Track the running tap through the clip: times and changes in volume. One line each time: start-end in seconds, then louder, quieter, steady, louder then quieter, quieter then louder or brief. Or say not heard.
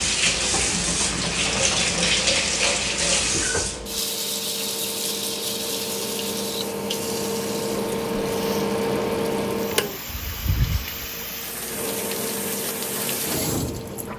0.0-14.1 quieter then louder.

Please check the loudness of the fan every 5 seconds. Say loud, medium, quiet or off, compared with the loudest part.
medium, loud, medium.